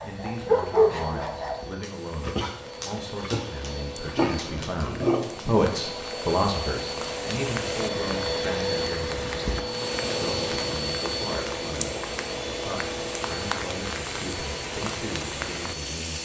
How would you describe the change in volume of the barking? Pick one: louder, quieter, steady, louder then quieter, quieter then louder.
quieter then louder.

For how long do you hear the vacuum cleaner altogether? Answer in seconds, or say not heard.
16 s.